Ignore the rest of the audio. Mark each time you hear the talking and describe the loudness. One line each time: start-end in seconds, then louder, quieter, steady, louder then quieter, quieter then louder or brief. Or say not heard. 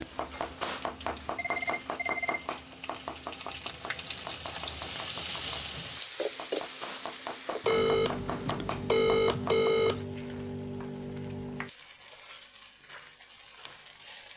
not heard.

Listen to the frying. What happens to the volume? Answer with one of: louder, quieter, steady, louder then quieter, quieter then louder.
louder then quieter.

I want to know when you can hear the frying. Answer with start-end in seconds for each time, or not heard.
0.0-14.3.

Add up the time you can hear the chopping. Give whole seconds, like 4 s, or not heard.
10 s.